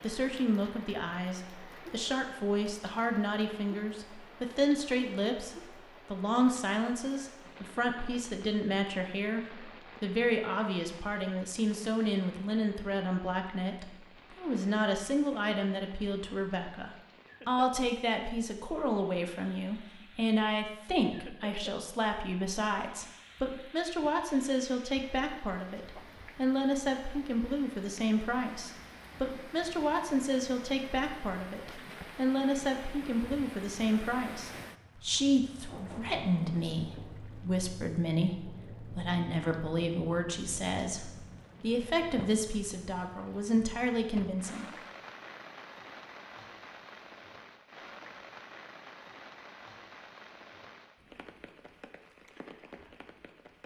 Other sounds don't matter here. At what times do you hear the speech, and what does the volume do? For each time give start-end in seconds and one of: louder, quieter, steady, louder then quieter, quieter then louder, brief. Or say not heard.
0.0-44.6 steady.